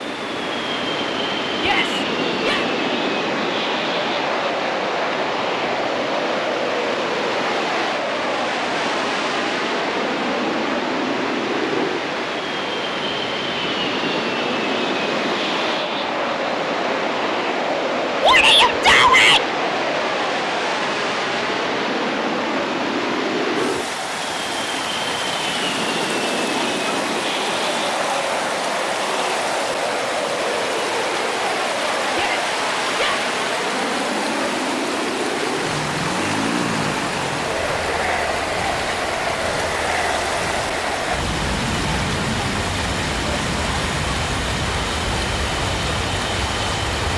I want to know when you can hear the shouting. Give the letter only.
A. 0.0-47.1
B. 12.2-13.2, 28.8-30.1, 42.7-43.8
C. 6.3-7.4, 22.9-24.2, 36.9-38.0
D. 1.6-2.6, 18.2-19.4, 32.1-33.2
D.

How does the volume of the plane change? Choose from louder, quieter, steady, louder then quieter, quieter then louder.
steady.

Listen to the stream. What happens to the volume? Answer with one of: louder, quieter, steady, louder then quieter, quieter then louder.
steady.